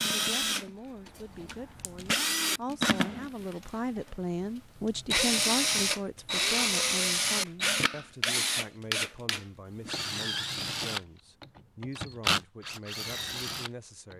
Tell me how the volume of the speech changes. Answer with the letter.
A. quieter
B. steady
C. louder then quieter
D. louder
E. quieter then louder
C.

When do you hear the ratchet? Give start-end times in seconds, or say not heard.
not heard.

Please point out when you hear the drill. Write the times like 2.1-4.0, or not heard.
0.0-14.1.